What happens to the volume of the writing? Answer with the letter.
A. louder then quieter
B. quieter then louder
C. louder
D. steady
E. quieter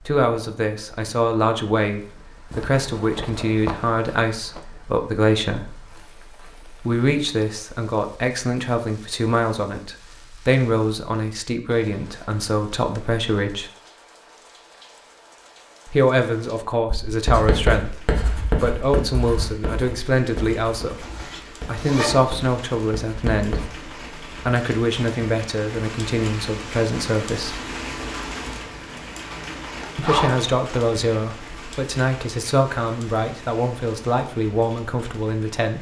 B.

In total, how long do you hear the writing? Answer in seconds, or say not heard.
7 s.